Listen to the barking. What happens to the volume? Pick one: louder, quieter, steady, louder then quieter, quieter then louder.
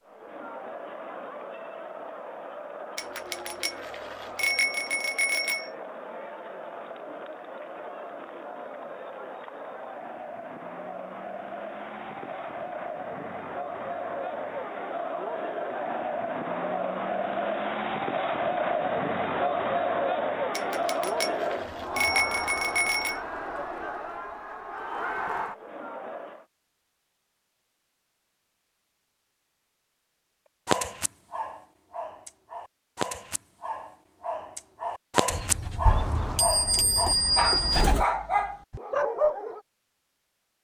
louder.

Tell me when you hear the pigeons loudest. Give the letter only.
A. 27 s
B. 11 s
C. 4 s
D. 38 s
D.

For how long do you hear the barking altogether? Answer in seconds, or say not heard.
9 s.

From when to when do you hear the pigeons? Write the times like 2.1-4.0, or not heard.
35.3-38.0.